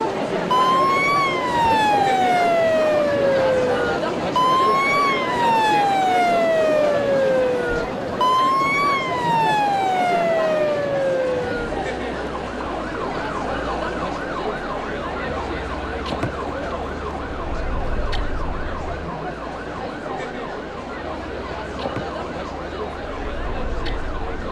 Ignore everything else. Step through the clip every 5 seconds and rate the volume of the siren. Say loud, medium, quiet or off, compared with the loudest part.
loud, loud, medium, quiet, quiet.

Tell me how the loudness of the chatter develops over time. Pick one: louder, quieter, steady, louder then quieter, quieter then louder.
quieter.